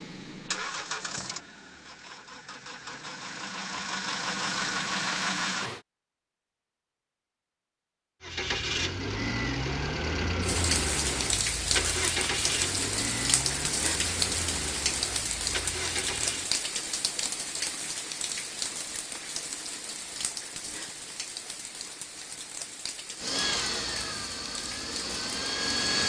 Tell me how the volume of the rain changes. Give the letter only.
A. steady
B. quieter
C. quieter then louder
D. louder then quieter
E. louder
B.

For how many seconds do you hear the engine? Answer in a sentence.
The engine can be heard for 17 seconds in total.